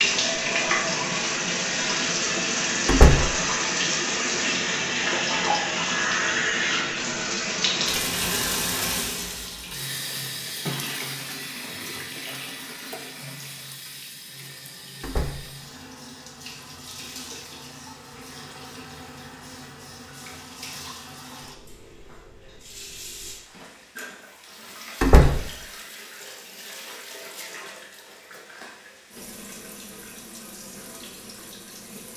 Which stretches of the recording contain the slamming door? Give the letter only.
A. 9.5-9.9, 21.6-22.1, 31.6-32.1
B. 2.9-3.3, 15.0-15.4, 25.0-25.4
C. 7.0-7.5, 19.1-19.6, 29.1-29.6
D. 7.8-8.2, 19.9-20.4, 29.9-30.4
B.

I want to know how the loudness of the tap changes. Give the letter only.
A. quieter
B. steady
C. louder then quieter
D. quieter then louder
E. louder
A.